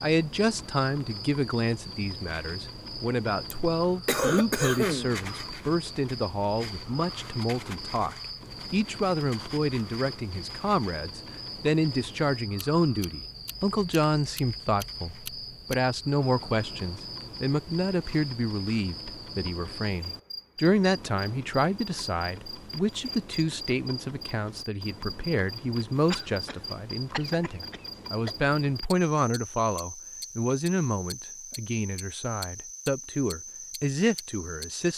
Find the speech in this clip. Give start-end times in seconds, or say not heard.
0.0-34.9.